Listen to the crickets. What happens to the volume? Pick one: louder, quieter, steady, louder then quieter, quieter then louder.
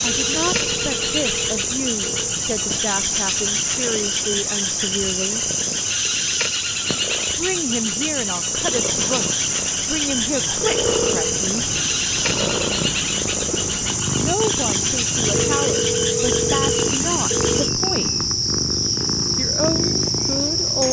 steady.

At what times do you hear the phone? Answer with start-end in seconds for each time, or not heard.
0.1-2.4, 10.6-11.4, 15.3-17.7.